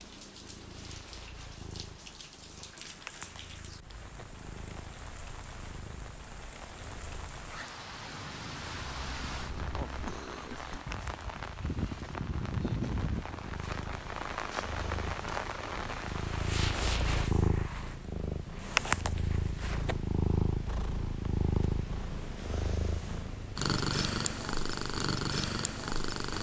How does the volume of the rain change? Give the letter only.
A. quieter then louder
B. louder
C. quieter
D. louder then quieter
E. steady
B.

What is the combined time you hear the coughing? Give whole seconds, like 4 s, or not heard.
2 s.